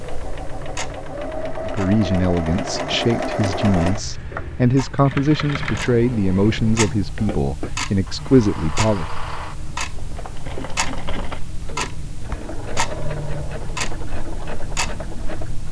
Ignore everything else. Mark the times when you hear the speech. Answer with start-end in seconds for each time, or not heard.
1.6-9.1.